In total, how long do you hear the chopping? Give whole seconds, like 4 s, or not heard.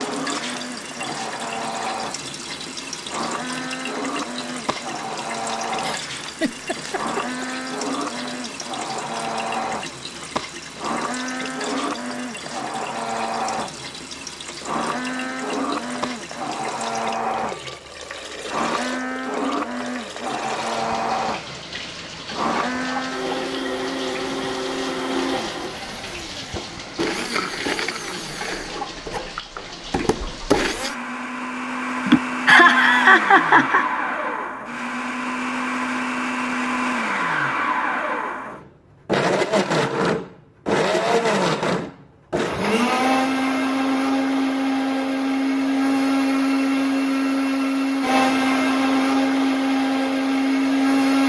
not heard.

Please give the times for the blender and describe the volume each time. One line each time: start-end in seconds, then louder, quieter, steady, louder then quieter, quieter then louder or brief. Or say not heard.
0.0-51.2 louder.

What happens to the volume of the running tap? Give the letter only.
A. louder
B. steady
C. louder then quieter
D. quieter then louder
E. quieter
B.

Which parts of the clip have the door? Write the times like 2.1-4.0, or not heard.
not heard.